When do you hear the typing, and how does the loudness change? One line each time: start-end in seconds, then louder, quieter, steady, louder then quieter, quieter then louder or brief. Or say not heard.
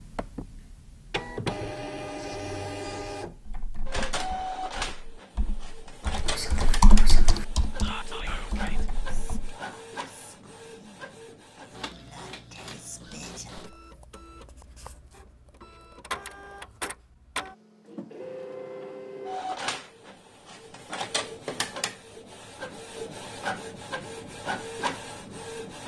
3.4-9.6 louder then quieter.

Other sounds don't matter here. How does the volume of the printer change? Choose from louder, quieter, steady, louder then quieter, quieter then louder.
quieter then louder.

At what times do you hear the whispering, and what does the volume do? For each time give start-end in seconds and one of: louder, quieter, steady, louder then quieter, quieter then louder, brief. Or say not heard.
6.2-13.5 quieter then louder.